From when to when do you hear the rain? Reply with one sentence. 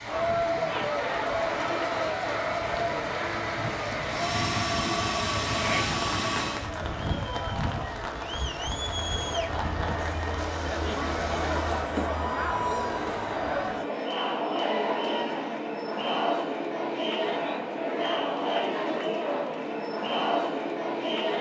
You can hear the rain from 0.0 to 11.9 s.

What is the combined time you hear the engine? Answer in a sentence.
The engine can be heard for 3 seconds in total.